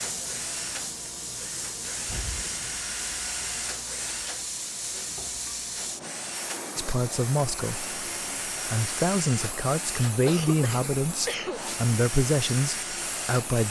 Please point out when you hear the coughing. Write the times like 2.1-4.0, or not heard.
10.2-11.7.